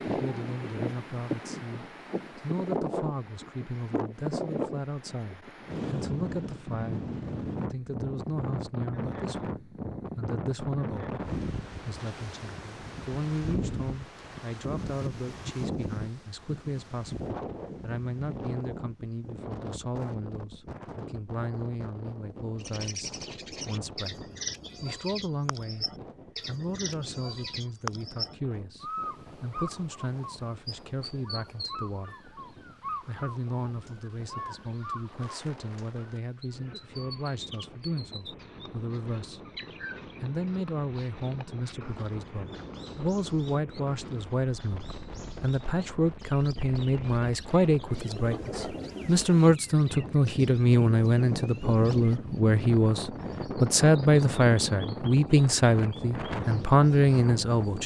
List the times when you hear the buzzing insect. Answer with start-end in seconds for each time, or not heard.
not heard.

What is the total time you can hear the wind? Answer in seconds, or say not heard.
58 s.